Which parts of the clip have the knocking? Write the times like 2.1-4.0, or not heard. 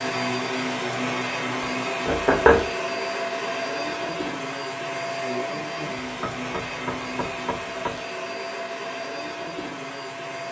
2.0-2.7, 6.0-8.0.